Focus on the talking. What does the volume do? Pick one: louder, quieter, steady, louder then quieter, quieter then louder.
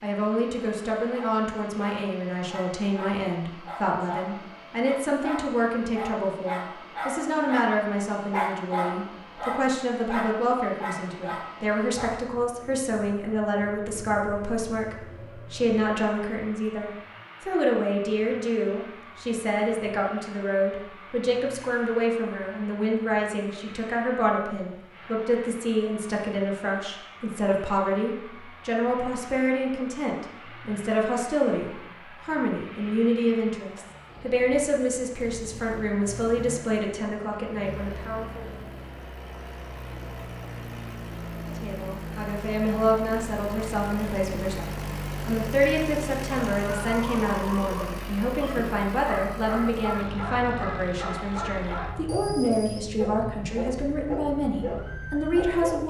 steady.